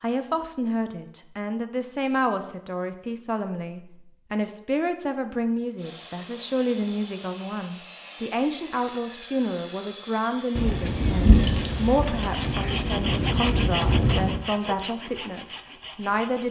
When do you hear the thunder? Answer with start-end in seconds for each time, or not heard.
10.6-14.4.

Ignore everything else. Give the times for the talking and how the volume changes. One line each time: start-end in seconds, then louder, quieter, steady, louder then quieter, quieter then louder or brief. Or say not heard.
0.0-16.4 steady.